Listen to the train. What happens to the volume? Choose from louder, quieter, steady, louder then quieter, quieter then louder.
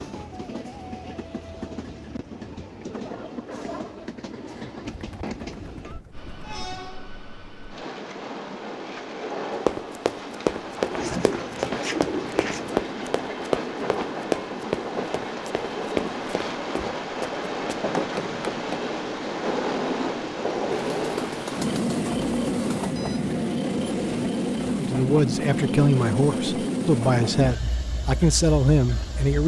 louder.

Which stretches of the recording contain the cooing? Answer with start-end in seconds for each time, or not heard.
4.8-6.9, 10.9-12.8, 20.7-22.9.